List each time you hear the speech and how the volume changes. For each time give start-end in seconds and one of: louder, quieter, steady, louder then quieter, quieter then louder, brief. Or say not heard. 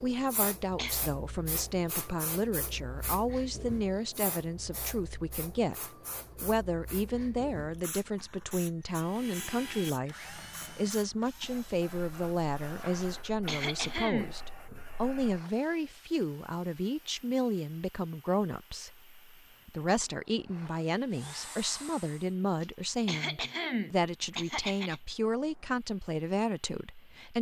0.0-27.3 steady.